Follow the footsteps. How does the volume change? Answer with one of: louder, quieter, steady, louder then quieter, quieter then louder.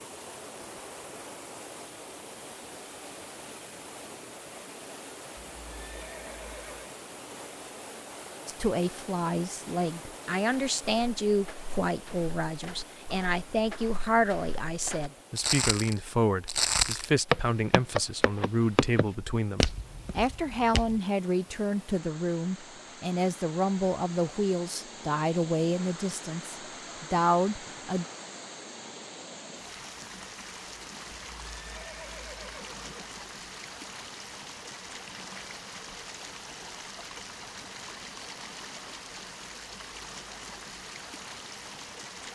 louder then quieter.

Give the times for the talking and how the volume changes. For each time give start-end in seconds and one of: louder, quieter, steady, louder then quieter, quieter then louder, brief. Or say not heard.
8.4-28.1 steady.